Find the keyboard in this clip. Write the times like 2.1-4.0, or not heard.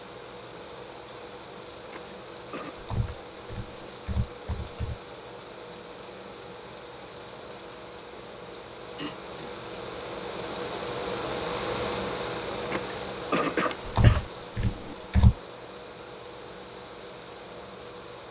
2.8-5.0, 13.8-15.3.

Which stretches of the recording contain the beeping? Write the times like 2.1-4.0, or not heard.
not heard.